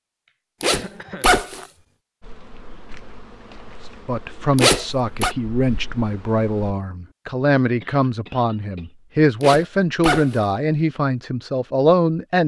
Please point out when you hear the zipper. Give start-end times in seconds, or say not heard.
0.6-1.6, 4.5-5.3, 9.4-10.4.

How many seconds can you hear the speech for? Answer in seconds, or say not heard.
8 s.